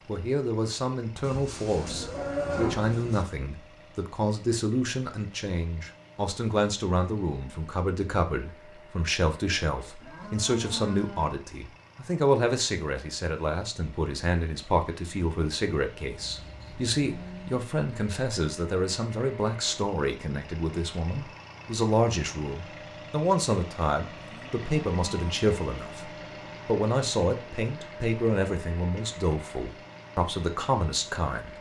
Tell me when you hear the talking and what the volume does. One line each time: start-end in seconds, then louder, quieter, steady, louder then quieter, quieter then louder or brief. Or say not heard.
0.1-31.5 steady.